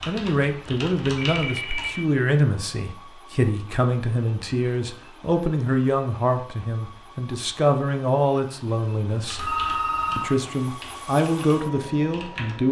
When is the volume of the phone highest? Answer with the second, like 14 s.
10 s.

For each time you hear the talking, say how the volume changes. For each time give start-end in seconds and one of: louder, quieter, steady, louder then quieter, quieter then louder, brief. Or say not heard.
0.1-9.6 steady
10.2-12.6 brief.